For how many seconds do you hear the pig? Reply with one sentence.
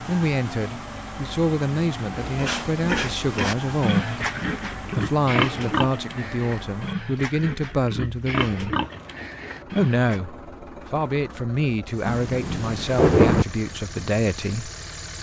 The pig can be heard for 8 seconds in total.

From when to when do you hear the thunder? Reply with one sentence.
The thunder can be heard from 12.1 to 13.4 s.